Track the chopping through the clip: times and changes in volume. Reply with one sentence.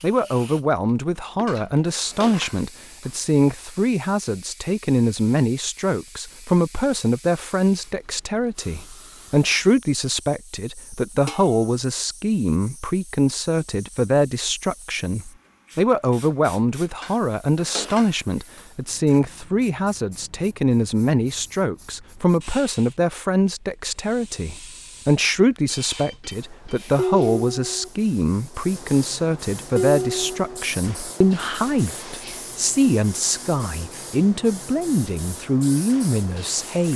The chopping can't be heard in this clip.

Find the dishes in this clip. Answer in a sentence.
The dishes can be heard from 1.4 to 3.0 s, from 11.2 to 11.7 s, from 17.0 to 18.6 s, from 26.9 to 27.9 s and from 29.8 to 30.6 s.